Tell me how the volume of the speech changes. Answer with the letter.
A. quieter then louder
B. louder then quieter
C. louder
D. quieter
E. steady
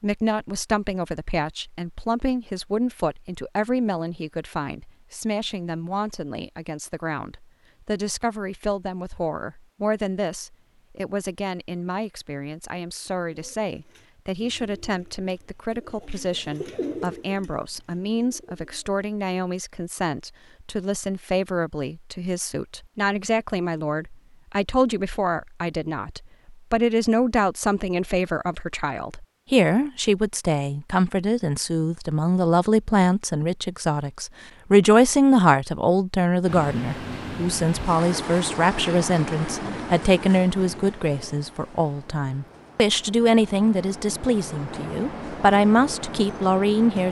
C.